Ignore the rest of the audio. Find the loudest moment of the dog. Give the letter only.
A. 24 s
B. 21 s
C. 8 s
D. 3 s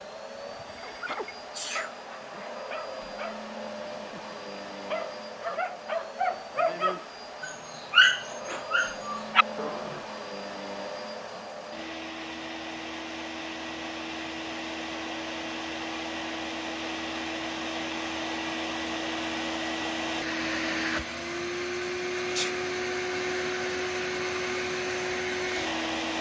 C.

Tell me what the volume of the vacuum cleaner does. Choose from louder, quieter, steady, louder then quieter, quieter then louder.
louder.